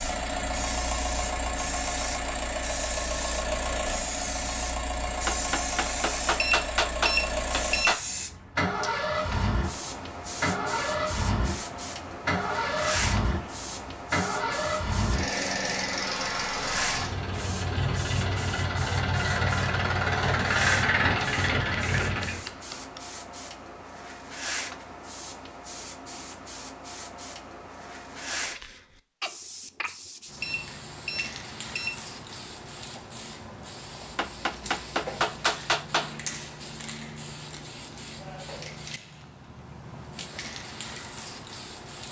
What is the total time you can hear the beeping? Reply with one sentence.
You can hear the beeping for 3 seconds altogether.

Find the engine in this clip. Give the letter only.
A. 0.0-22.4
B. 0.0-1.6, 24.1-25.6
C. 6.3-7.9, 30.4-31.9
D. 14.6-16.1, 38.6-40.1
A.